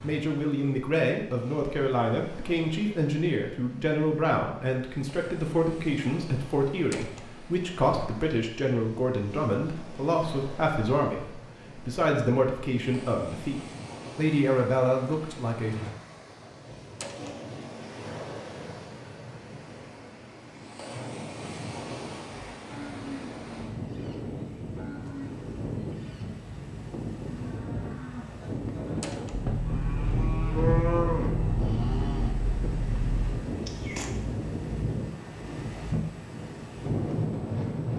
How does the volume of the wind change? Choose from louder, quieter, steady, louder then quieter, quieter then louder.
louder.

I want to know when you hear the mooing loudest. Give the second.
31 s.